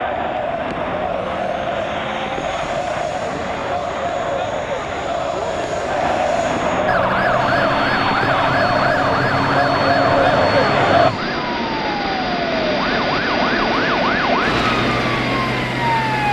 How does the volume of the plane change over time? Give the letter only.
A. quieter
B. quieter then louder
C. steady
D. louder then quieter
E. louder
E.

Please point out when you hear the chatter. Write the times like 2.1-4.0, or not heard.
0.0-11.2.